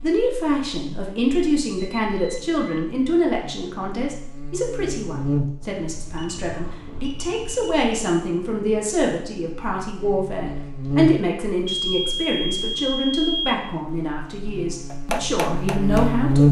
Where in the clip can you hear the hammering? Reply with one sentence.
The hammering can be heard from 14.9 to 16.4 s.